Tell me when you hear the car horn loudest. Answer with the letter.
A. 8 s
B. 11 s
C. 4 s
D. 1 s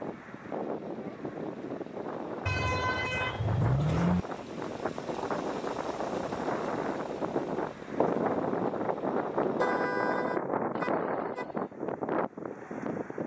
C.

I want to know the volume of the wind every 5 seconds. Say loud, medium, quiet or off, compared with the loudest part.
medium, loud, loud.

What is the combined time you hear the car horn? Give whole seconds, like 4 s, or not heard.
4 s.